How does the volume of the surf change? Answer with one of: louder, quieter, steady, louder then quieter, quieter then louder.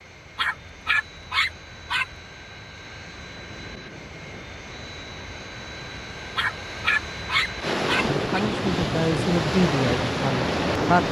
louder.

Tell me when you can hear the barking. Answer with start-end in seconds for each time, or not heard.
0.3-2.2, 6.3-8.4.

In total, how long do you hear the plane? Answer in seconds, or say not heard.
11 s.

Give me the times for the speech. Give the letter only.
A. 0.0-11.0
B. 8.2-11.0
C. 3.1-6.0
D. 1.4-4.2
B.